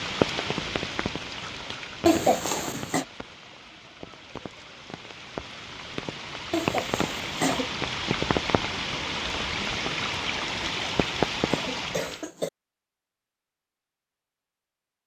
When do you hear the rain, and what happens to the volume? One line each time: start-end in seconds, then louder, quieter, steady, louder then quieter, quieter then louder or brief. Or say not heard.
0.0-12.3 quieter then louder.